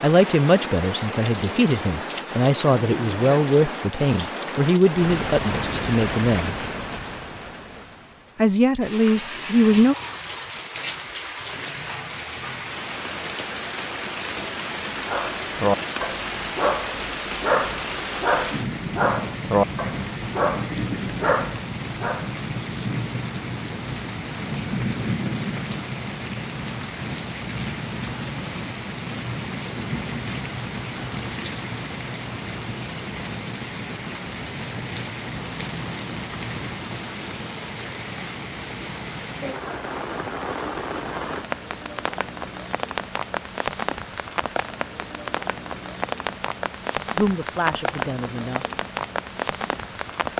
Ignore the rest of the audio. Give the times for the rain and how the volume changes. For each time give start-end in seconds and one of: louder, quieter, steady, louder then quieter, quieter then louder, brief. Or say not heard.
0.0-50.3 steady.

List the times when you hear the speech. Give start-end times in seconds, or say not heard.
0.0-6.6, 8.3-9.9, 47.1-48.8.